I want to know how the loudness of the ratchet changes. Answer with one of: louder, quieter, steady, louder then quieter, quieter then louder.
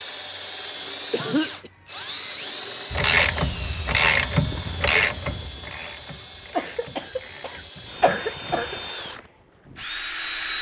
quieter.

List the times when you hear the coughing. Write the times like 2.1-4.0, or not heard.
1.1-1.7, 6.5-8.8.